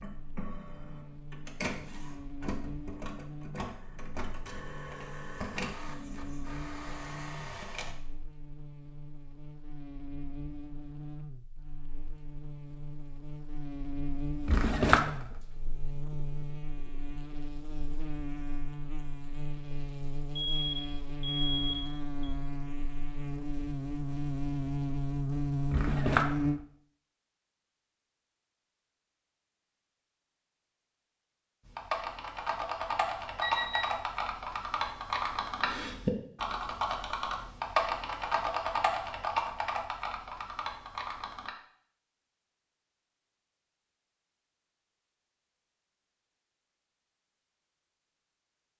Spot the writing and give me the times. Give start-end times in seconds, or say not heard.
not heard.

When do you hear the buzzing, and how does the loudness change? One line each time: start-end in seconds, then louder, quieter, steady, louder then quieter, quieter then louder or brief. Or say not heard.
0.0-26.6 louder.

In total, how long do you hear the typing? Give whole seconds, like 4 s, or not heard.
10 s.